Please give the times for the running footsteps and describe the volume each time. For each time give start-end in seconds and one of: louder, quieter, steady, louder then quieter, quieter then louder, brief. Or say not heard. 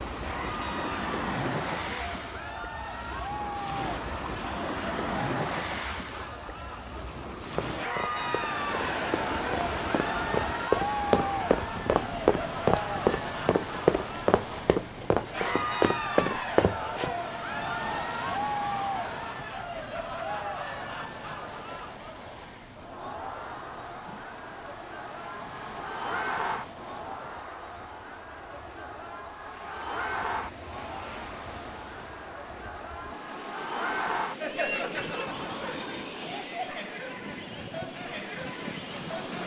7.5-17.1 louder.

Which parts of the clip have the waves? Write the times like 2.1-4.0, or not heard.
0.0-39.4.